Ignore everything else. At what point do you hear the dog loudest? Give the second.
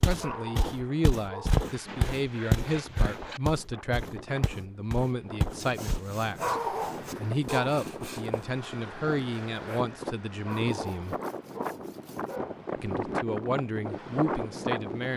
7 s.